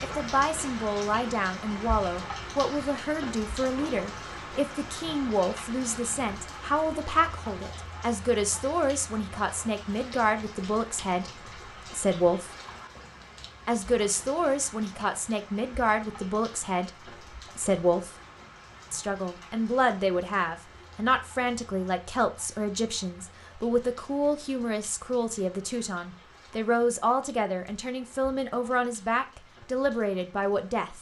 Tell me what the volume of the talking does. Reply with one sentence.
The volume of the talking stays about the same.